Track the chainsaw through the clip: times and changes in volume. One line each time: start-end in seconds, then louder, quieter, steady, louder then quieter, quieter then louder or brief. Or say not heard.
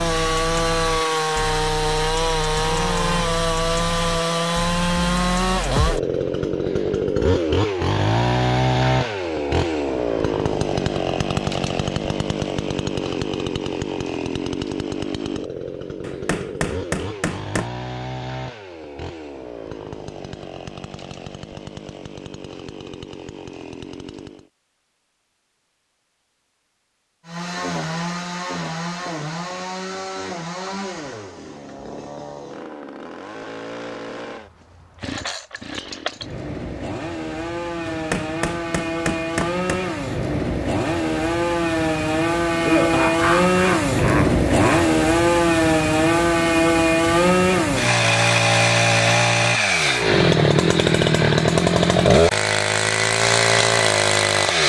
0.0-24.5 quieter
27.2-54.6 louder.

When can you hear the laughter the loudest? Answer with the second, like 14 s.
43 s.